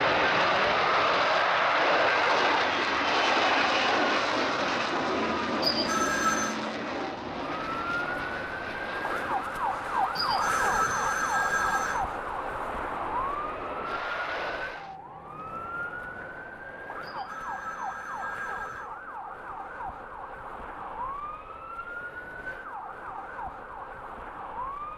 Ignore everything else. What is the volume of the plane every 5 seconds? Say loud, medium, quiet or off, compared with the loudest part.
loud, medium, quiet, off, off.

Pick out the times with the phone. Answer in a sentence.
You can hear the phone from 5.6 to 6.5 s, from 10.2 to 12.1 s and from 17.0 to 18.9 s.